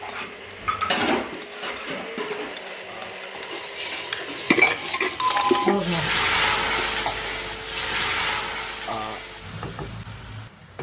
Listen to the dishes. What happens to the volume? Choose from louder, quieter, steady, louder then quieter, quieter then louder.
quieter then louder.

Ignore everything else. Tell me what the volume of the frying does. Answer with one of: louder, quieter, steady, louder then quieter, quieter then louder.
louder then quieter.